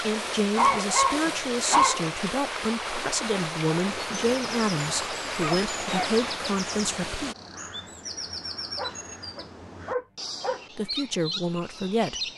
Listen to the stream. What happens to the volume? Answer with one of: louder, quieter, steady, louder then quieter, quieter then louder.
steady.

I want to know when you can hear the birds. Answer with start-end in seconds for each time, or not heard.
3.9-12.3.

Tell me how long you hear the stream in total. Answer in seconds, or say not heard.
7 s.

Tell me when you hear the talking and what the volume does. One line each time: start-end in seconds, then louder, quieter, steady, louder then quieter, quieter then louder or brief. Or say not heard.
0.0-7.3 steady
10.8-12.3 brief.